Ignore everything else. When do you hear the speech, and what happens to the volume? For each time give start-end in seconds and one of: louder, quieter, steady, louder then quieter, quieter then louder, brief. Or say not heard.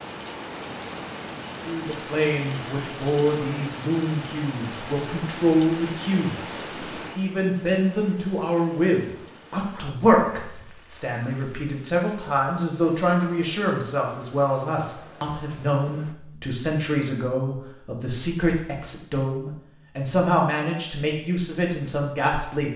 1.6-22.7 steady.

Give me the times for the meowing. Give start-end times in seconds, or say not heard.
not heard.